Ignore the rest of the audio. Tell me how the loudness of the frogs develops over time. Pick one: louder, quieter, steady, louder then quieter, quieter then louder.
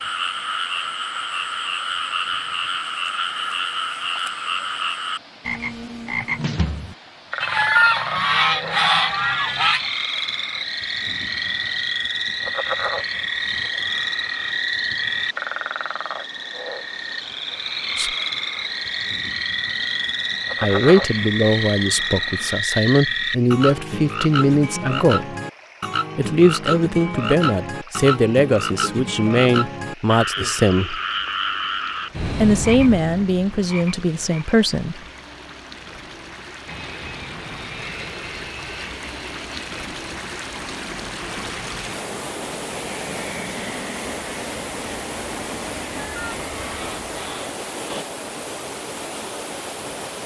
steady.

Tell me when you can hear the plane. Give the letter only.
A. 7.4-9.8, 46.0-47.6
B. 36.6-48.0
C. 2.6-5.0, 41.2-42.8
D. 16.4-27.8
B.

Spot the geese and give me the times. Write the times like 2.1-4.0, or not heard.
7.4-9.8, 46.0-47.6.